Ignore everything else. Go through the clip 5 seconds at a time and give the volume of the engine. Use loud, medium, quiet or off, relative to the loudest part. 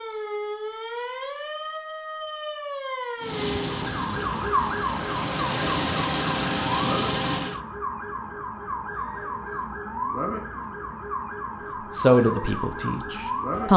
medium, loud, off.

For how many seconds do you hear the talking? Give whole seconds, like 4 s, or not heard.
2 s.